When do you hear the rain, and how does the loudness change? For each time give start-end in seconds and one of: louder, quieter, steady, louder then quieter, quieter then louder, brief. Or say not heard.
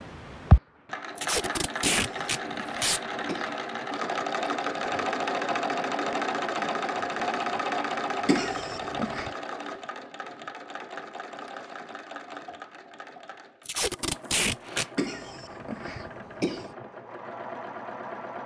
not heard.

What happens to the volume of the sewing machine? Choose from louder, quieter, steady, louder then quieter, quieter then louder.
quieter.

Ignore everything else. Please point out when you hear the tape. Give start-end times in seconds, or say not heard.
1.1-3.0, 13.7-14.8.